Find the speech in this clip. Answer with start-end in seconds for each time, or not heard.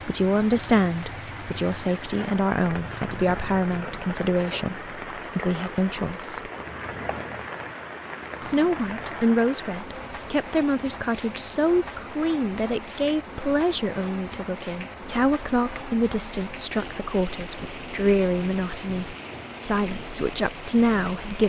0.1-6.5, 8.4-21.4.